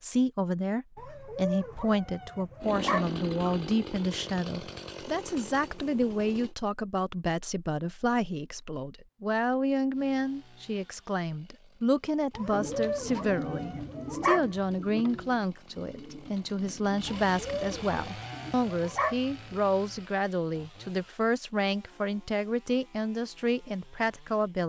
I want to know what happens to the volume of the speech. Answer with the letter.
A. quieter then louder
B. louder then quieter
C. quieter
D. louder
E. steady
E.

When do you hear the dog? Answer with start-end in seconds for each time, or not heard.
0.9-3.6, 12.3-14.8, 17.2-19.6.